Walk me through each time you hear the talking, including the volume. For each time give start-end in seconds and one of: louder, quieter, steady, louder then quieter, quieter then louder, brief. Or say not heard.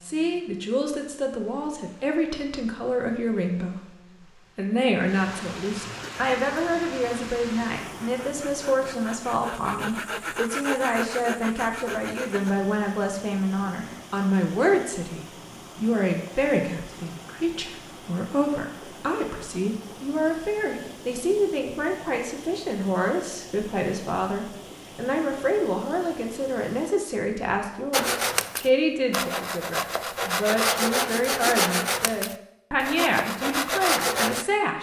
0.0-34.7 steady.